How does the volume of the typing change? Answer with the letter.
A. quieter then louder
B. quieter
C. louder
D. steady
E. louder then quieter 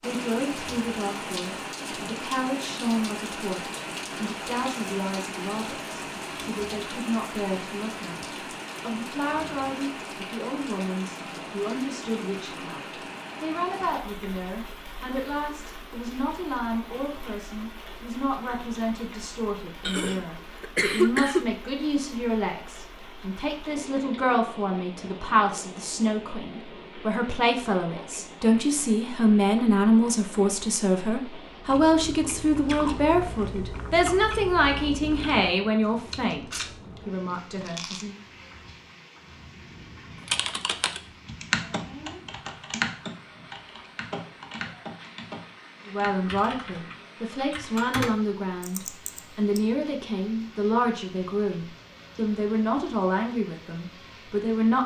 A.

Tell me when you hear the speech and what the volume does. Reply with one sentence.
You can hear the speech from 0.0 to 38.2 s, getting louder; and from 45.9 to 54.8 s, at a steady volume.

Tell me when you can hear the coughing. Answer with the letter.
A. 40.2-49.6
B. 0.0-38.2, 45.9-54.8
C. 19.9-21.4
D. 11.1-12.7
C.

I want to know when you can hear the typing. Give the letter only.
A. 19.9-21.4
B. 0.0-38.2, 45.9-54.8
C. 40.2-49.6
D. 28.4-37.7
C.